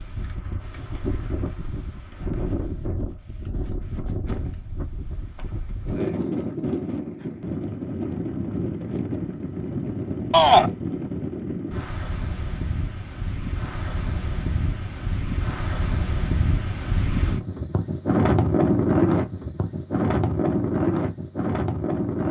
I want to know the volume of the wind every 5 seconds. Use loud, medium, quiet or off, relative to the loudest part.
medium, medium, medium, loud, loud.